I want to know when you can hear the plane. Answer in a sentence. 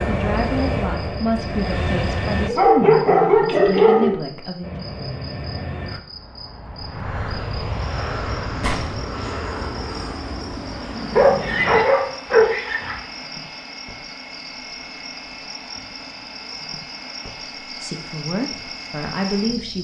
You can hear the plane from 0.0 to 2.5 s and from 4.6 to 19.7 s.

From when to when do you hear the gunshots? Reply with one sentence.
You can hear the gunshots from 8.6 to 9.1 s.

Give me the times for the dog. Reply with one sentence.
The dog can be heard from 2.5 to 4.2 s and from 11.2 to 12.9 s.